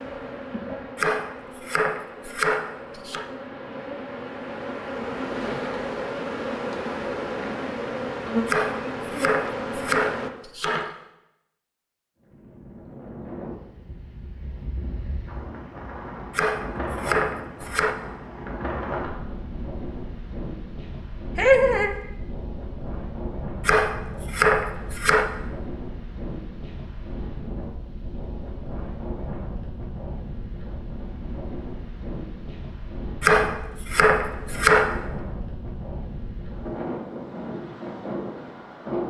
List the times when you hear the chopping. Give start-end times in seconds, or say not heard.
0.9-3.2, 8.4-10.9, 16.3-17.9, 23.6-25.4, 33.2-35.0.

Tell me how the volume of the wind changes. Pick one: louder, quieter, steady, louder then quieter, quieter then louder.
steady.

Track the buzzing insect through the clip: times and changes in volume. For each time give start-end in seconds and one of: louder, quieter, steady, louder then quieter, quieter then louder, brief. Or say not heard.
0.0-10.3 louder.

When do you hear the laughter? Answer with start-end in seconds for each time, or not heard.
21.4-21.9.